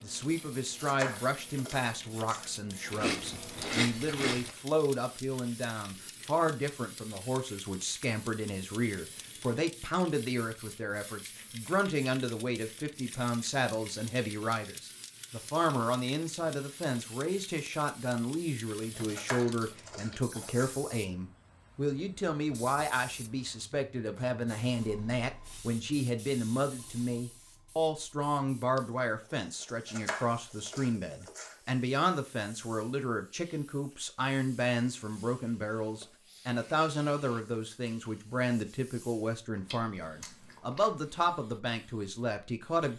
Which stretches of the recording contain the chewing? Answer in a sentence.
The chewing can be heard from 2.9 to 4.5 s, from 18.9 to 20.6 s and from 39.5 to 41.4 s.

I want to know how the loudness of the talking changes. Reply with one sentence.
The loudness of the talking stays about the same.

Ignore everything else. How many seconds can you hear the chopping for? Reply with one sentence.
You can hear the chopping for 5 seconds altogether.